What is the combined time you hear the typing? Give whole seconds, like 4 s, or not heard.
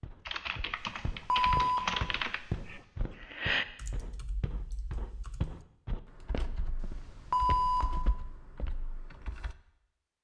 9 s.